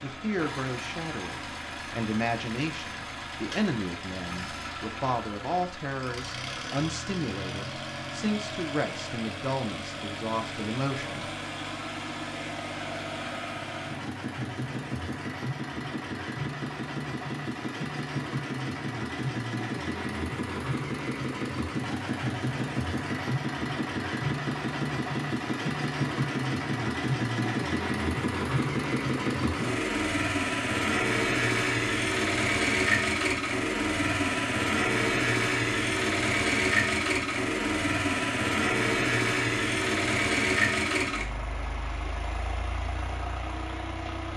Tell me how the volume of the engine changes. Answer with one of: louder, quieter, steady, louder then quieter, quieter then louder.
louder.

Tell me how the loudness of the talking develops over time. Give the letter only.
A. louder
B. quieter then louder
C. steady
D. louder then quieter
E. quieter
C.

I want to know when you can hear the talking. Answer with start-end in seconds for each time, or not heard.
0.0-11.3.